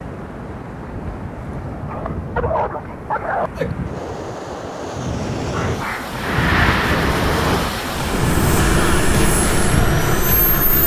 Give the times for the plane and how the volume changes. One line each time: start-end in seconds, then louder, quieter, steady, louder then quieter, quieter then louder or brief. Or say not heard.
6.1-10.8 quieter then louder.